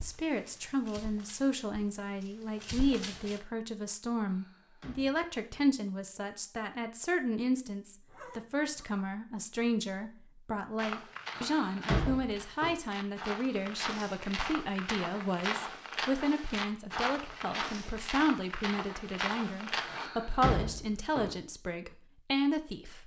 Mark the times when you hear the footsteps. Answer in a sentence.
The footsteps can be heard from 0.0 to 3.4 s and from 10.8 to 20.1 s.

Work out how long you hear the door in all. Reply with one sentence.
You can hear the door for 4 seconds altogether.